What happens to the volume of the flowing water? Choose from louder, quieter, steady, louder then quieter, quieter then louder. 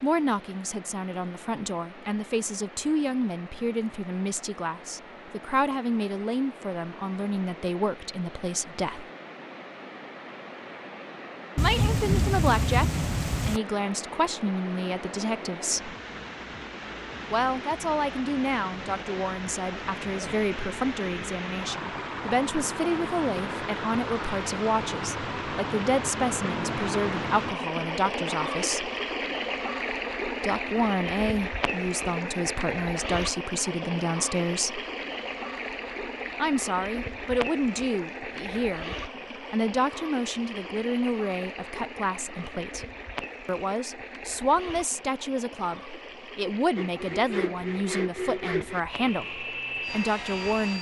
louder then quieter.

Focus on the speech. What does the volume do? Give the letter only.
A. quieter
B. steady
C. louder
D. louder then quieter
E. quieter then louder
B.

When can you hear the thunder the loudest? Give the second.
12 s.